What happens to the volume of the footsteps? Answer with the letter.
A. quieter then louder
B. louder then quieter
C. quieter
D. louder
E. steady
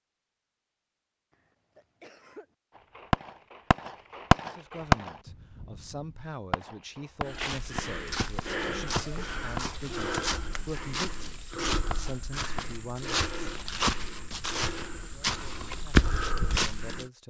D.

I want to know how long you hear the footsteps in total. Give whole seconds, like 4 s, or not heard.
10 s.